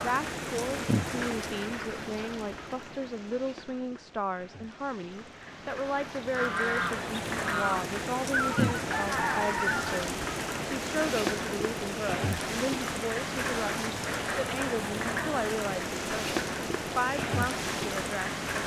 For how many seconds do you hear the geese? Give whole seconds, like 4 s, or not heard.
4 s.